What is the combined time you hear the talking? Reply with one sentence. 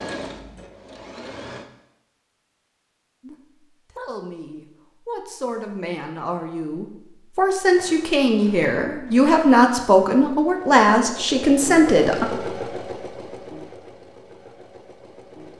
The talking can be heard for 9 seconds in total.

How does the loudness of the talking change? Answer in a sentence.
The loudness of the talking goes up.